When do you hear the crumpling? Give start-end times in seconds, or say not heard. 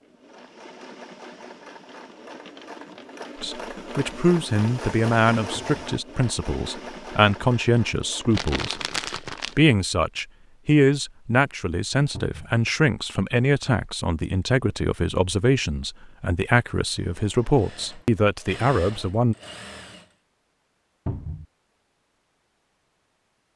8.3-9.6.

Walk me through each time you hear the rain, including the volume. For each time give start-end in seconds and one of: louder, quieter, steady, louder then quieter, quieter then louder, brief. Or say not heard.
not heard.